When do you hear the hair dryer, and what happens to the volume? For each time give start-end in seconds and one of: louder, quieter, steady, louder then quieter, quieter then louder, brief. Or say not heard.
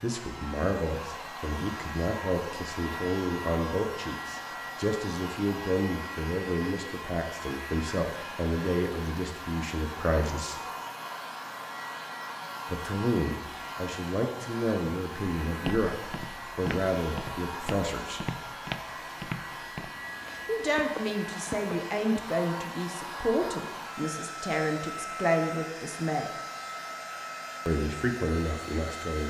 0.0-29.2 steady.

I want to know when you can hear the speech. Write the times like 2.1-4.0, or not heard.
0.0-10.6, 12.7-18.2, 20.4-26.3, 27.6-29.2.